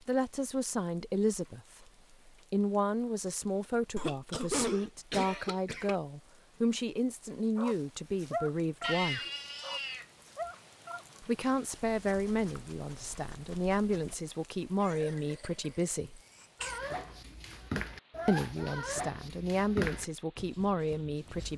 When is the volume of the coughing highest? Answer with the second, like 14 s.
5 s.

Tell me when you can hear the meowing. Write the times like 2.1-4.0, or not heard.
8.8-10.5.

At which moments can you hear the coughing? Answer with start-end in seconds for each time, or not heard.
4.0-6.0, 14.8-16.8.